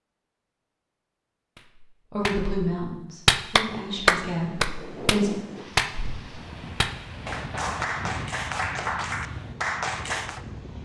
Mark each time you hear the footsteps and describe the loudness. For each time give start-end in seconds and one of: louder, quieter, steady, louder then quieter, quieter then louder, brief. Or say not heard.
not heard.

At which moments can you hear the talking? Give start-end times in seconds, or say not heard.
2.1-5.3.